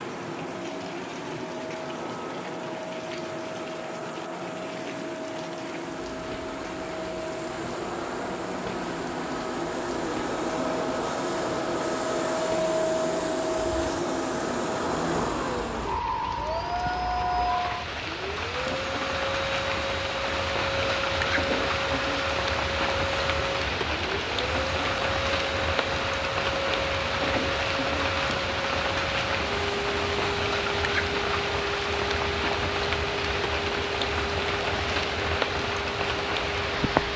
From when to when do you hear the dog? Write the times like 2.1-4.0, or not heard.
not heard.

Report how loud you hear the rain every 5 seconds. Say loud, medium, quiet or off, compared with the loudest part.
quiet, quiet, quiet, medium, loud, loud, loud, loud.